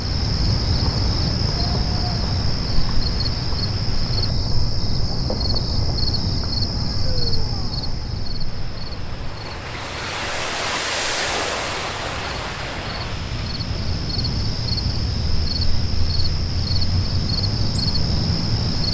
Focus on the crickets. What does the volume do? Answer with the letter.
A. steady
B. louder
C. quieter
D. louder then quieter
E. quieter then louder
E.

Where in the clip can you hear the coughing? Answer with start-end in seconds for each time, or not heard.
not heard.